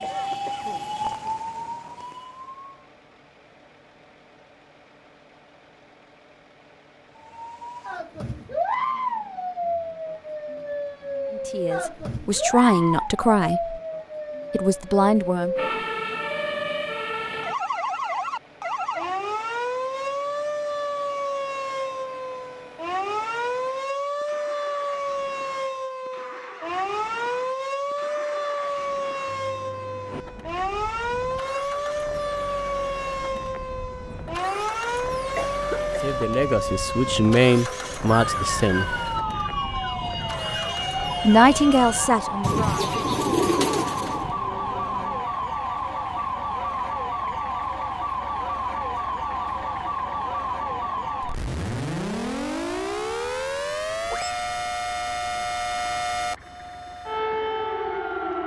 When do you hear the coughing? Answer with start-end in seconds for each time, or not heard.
0.0-0.9, 35.4-36.0.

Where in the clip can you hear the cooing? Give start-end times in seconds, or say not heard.
42.4-44.3.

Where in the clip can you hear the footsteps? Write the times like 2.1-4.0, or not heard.
not heard.